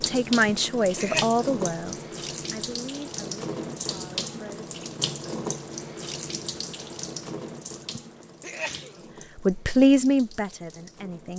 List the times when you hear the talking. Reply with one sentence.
You can hear the talking from 0.0 to 4.7 s and from 9.4 to 11.3 s.